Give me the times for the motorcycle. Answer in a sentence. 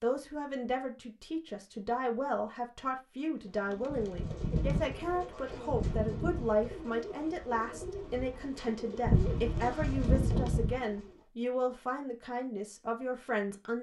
You can't hear the motorcycle here.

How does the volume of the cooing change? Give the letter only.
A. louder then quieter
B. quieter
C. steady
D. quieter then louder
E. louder
D.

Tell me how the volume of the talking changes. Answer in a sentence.
The loudness of the talking stays about the same.